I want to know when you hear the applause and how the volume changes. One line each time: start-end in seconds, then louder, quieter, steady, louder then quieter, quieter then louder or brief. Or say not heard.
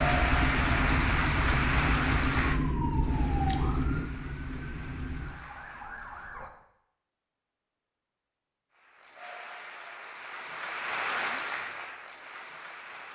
0.0-6.3 quieter
8.7-13.1 louder then quieter.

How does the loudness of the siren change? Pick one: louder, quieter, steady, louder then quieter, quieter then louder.
quieter.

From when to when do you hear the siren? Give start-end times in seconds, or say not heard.
0.0-6.5.